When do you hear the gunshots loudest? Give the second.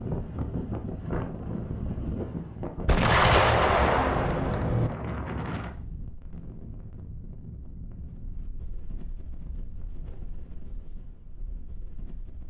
3 s.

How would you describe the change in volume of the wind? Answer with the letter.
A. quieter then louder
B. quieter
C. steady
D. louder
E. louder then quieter
B.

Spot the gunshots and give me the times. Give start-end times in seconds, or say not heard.
2.9-4.9.